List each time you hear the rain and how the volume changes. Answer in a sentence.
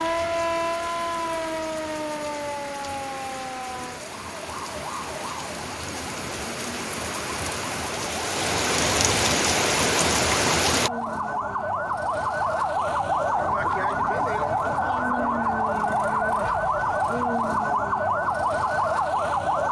You can hear the rain from 0.0 to 10.9 s, getting louder.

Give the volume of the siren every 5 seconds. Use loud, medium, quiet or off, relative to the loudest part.
medium, quiet, loud, loud.